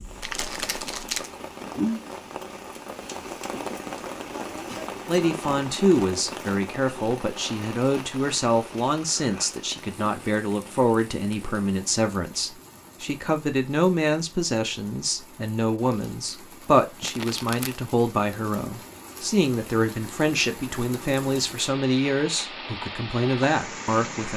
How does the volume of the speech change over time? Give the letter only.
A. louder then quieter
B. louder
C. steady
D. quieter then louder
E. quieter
C.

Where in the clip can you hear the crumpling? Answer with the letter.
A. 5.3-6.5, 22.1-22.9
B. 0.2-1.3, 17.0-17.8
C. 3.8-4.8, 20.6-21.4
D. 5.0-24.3
B.